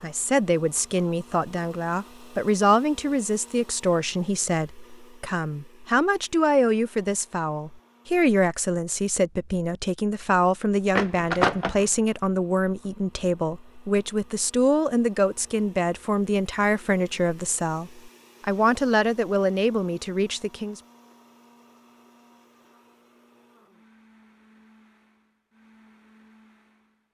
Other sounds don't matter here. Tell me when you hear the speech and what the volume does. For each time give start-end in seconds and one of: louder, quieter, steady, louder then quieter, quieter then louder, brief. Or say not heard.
0.0-20.8 steady.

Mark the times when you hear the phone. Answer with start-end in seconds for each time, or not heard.
10.9-11.8.